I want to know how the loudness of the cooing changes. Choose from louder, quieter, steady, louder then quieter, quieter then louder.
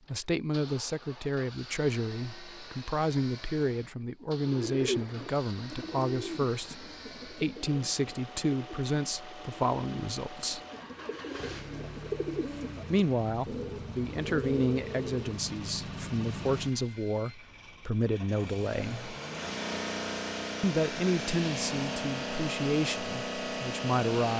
quieter then louder.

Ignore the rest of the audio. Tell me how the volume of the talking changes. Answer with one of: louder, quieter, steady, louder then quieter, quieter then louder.
steady.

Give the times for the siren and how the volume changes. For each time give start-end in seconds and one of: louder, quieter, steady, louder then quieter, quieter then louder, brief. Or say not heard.
not heard.